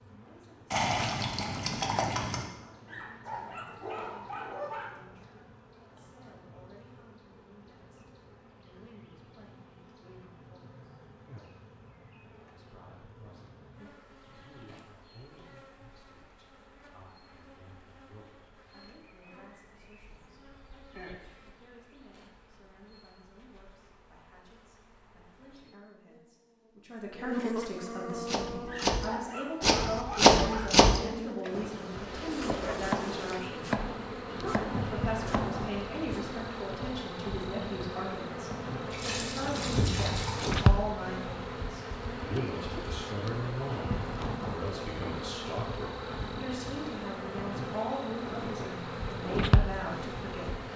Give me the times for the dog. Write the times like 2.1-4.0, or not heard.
2.9-4.9, 28.6-30.7.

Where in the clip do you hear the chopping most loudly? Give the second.
30 s.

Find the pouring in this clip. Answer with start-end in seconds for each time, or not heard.
0.7-2.5, 38.9-40.6.